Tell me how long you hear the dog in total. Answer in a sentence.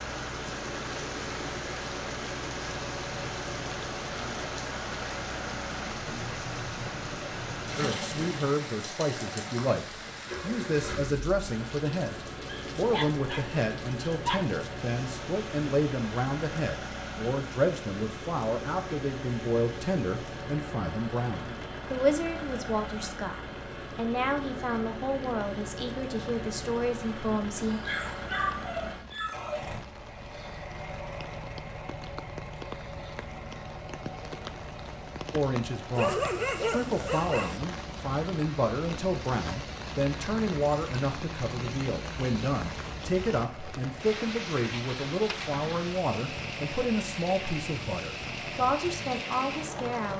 You can hear the dog for 5 seconds altogether.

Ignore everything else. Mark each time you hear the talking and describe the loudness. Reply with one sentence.
You can hear the talking from 7.8 to 27.8 s, at a steady volume; and from 35.3 to 50.1 s, at a steady volume.